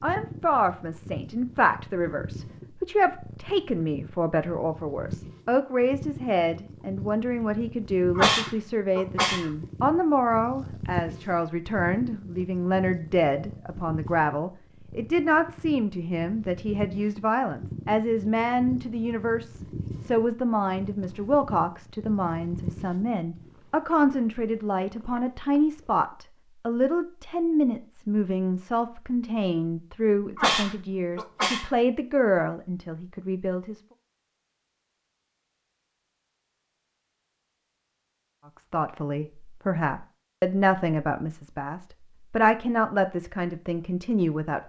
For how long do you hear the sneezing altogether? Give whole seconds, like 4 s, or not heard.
3 s.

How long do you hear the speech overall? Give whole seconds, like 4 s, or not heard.
40 s.